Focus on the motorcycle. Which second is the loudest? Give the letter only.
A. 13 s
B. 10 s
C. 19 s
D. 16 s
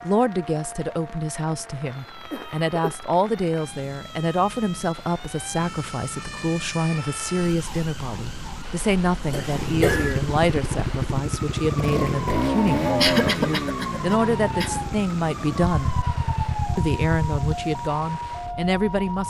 A.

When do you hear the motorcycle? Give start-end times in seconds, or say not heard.
9.4-19.2.